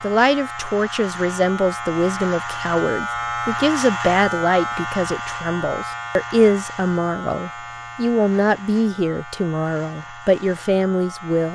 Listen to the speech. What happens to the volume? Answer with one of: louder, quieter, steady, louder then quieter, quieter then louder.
steady.